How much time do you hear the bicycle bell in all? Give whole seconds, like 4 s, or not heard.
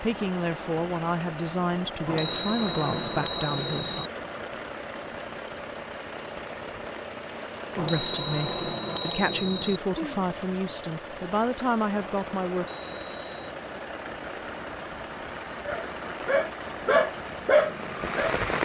5 s.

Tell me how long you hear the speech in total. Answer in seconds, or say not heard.
9 s.